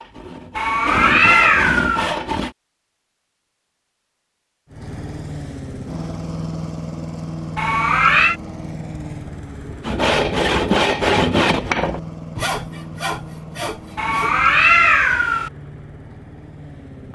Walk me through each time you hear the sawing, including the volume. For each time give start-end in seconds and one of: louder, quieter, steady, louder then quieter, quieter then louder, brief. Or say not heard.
0.0-2.5 brief
9.8-14.3 quieter.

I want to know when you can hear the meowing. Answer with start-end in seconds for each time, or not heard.
0.6-2.1, 7.5-8.3, 13.9-15.5.